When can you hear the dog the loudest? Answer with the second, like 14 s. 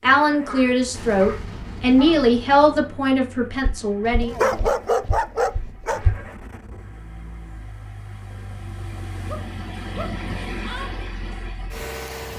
5 s.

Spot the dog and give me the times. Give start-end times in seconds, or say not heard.
0.3-2.3, 4.2-6.0, 9.2-10.9.